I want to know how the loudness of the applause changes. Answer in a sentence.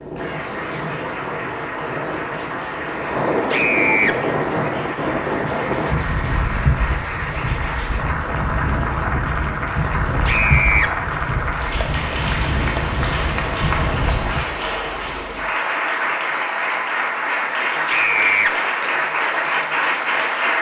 The volume of the applause goes up.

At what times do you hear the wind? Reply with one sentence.
The wind can be heard from 0.0 to 14.4 s.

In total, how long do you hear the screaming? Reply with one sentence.
You can hear the screaming for 2 seconds altogether.